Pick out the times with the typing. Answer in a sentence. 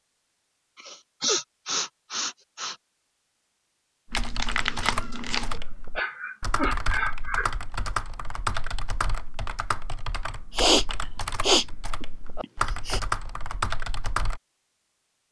The typing can be heard from 4.0 to 14.4 s.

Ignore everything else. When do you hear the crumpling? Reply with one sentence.
The crumpling can be heard from 4.1 to 5.6 s.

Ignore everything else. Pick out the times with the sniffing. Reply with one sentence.
The sniffing can be heard from 0.8 to 2.8 s, from 5.5 to 7.5 s and from 10.6 to 13.0 s.